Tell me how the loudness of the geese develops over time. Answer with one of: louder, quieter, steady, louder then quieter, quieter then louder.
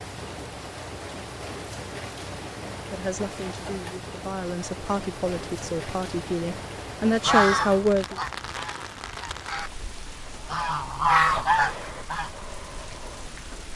quieter then louder.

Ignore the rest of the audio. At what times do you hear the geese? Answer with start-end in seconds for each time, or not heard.
7.2-12.3.